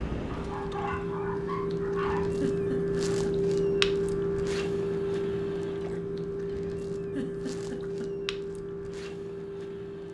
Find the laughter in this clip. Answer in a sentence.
You can hear the laughter from 2.4 to 3.4 s and from 7.2 to 8.1 s.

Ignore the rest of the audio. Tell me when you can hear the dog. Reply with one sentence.
You can hear the dog from 0.2 to 2.3 s.